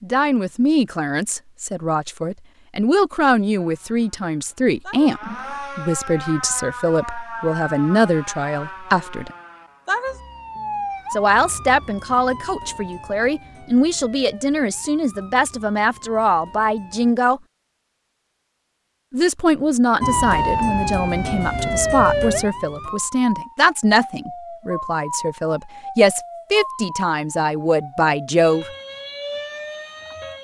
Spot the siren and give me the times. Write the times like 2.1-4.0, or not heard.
3.5-17.1, 20.0-30.3.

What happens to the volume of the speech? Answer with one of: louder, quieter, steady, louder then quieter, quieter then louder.
steady.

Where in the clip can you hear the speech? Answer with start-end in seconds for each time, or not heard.
0.0-9.3, 11.1-17.4, 19.1-28.7.